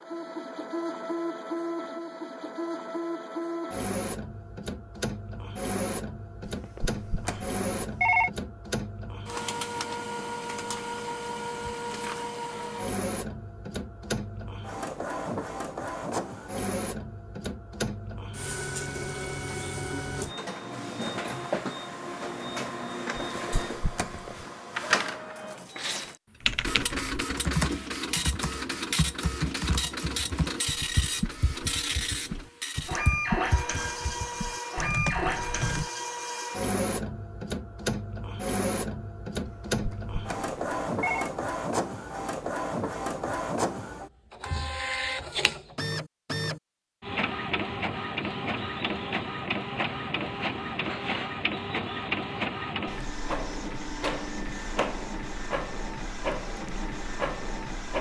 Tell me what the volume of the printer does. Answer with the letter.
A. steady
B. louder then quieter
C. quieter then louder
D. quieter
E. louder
A.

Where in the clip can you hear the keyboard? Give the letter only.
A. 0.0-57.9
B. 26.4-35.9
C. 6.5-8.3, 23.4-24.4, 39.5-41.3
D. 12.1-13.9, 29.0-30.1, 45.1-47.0
B.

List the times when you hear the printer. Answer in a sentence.
The printer can be heard from 0.0 to 57.9 s.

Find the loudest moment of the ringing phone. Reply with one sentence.
The volume of the ringing phone peaks at 8 seconds.